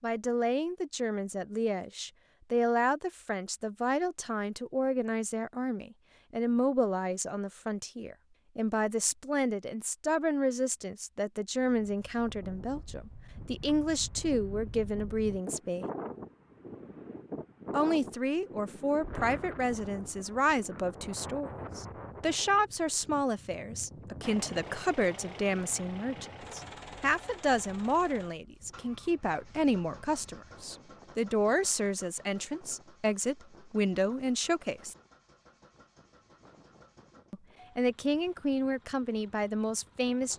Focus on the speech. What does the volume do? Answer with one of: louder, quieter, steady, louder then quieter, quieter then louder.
steady.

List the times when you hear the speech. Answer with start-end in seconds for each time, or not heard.
0.0-15.8, 17.7-35.0, 37.3-40.3.